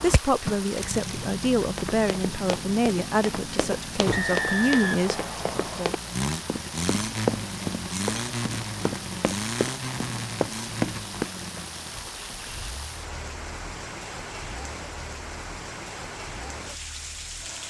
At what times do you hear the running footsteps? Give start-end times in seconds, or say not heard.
1.8-11.3.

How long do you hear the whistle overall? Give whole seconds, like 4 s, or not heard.
2 s.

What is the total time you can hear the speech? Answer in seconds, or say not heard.
6 s.